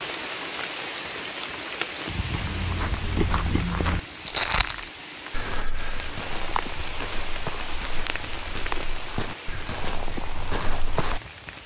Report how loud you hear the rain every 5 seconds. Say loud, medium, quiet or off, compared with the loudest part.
loud, loud, medium.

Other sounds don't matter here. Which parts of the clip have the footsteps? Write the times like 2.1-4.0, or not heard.
2.3-11.2.